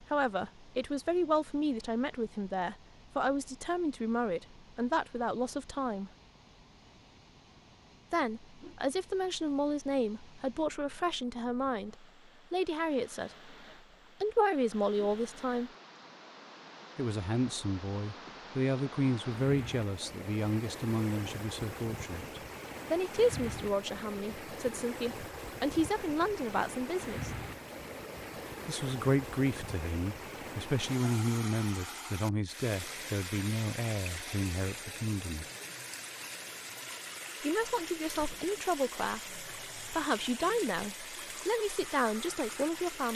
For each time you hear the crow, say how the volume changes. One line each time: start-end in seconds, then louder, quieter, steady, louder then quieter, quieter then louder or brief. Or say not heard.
not heard.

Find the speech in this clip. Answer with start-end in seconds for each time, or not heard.
0.0-6.1, 8.1-13.5, 14.2-15.7, 16.9-27.4, 28.6-35.5, 37.4-43.1.